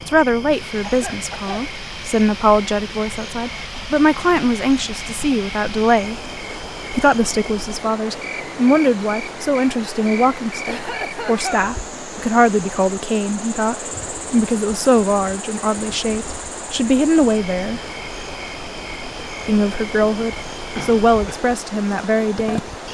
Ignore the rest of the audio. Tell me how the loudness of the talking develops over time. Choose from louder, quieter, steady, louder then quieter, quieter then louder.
steady.